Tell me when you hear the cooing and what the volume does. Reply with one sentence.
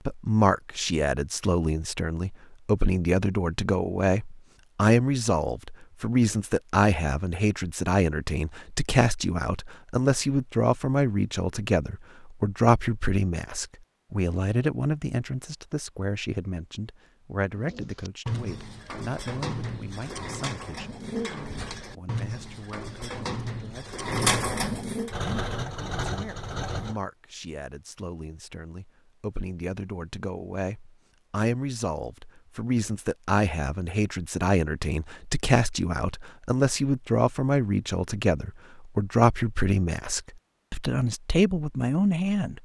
The cooing can be heard from 17.6 to 25.1 s, getting louder.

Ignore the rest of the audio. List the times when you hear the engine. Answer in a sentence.
You can hear the engine from 25.1 to 27.0 s.